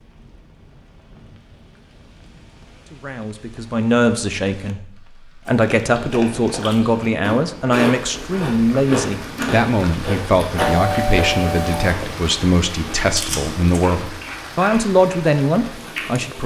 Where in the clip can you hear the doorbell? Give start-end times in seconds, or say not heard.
10.6-11.9.